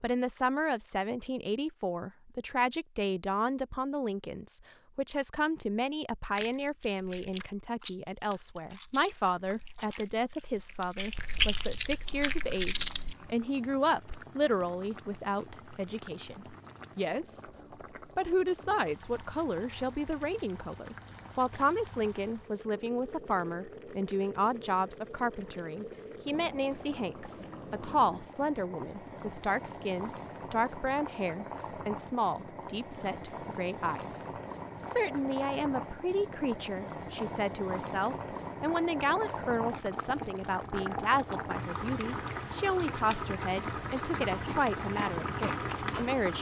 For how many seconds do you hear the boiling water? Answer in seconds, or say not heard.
34 s.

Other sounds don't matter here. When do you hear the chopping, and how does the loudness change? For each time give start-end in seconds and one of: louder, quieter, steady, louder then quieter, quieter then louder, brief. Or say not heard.
not heard.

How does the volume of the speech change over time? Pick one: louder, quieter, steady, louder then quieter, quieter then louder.
steady.